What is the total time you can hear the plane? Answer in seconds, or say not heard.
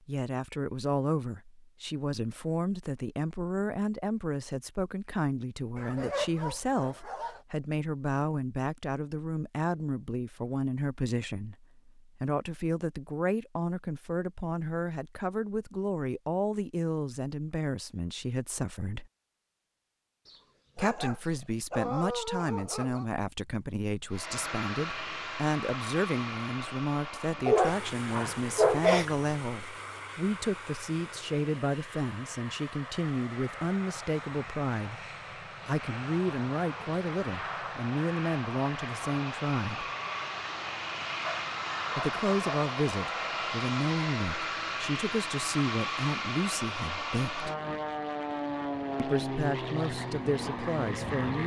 27 s.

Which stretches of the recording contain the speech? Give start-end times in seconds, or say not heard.
0.1-19.1, 20.8-35.0, 35.6-39.9, 42.0-47.5, 49.0-51.4.